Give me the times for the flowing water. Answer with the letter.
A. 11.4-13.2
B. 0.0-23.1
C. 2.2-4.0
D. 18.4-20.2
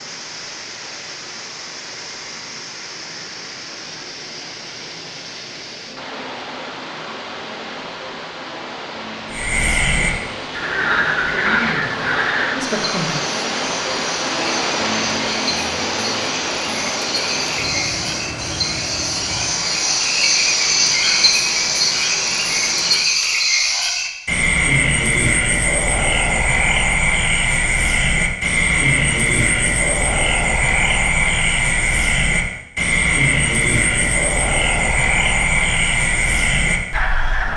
B.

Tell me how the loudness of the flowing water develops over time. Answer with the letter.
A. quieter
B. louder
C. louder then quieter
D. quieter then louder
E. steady
C.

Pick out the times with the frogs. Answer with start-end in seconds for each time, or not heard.
9.3-37.5.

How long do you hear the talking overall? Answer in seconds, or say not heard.
2 s.